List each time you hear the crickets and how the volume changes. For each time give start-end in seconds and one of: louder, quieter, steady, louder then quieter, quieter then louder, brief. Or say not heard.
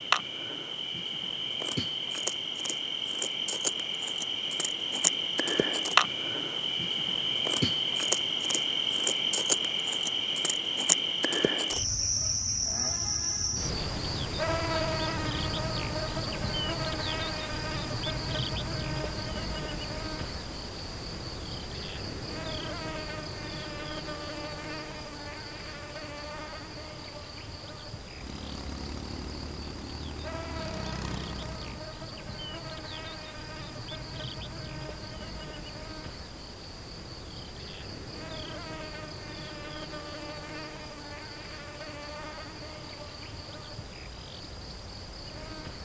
0.0-45.8 quieter.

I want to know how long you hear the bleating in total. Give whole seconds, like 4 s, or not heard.
not heard.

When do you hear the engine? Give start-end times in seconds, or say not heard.
28.1-31.9.